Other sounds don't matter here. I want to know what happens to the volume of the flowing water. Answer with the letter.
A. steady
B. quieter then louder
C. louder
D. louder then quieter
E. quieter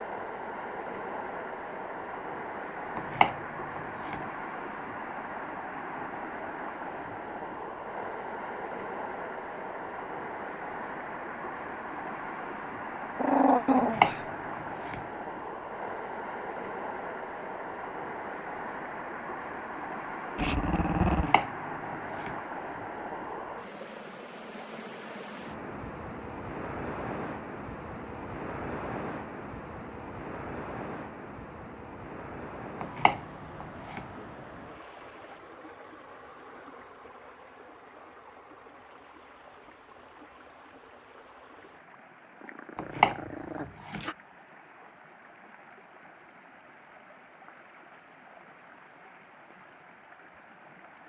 E.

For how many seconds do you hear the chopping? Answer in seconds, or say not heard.
6 s.